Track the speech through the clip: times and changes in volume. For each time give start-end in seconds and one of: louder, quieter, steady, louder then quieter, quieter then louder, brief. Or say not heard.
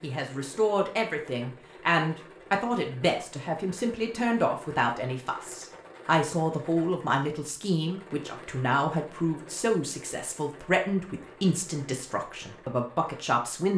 0.0-13.7 steady.